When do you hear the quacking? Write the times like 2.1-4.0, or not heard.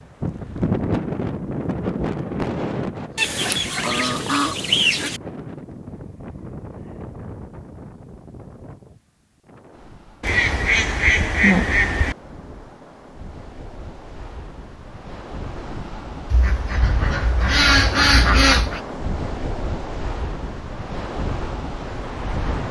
3.1-5.2, 10.2-12.2, 16.3-18.8.